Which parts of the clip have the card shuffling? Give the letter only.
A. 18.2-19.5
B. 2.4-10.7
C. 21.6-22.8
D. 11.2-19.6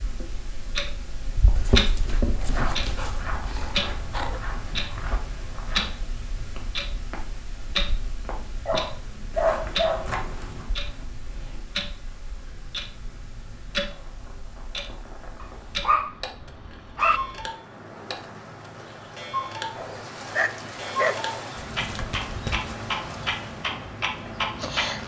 C.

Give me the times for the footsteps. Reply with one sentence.
You can hear the footsteps from 2.4 to 10.7 s.